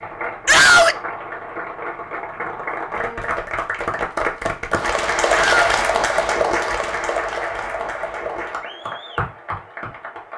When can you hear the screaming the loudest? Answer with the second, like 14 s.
1 s.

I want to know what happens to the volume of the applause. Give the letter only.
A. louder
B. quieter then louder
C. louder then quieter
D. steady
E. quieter
C.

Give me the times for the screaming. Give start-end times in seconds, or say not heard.
0.5-1.0, 5.3-5.8.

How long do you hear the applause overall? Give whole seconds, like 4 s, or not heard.
10 s.